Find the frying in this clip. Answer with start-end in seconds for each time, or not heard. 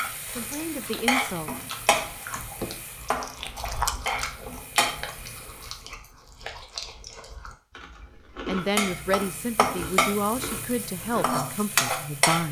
0.0-5.8, 8.8-12.4.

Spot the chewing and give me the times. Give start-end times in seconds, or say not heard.
0.0-11.3.